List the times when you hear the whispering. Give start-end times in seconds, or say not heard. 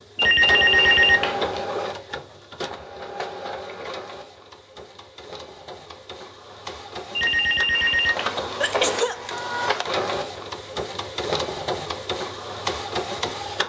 not heard.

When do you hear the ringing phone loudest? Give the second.
1 s.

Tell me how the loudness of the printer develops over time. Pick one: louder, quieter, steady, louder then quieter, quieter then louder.
quieter then louder.